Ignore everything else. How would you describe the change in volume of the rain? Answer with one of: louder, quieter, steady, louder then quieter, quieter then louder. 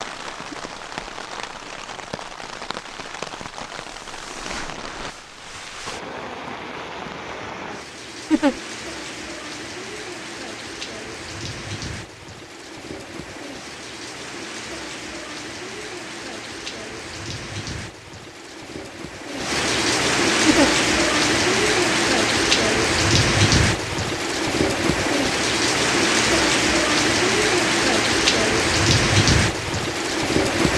louder.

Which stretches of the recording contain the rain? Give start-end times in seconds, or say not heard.
0.0-30.7.